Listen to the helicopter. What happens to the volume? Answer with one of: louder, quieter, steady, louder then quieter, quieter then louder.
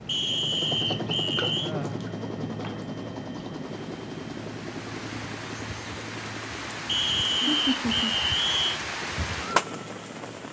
quieter.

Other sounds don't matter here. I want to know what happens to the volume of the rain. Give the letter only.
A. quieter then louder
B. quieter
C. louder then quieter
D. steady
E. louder
E.